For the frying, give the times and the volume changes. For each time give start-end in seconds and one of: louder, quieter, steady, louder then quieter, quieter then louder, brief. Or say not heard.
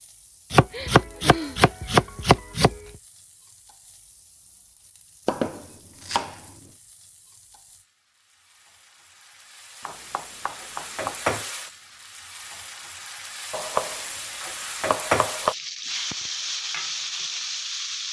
0.0-18.0 louder.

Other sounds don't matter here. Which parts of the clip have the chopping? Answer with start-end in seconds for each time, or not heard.
0.5-2.8, 5.2-6.4, 9.8-11.4, 13.5-15.6.